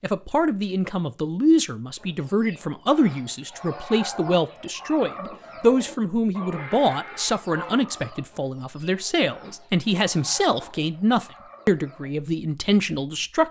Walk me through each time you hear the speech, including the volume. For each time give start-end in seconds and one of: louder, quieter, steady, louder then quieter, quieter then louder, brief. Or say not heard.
0.0-13.4 steady.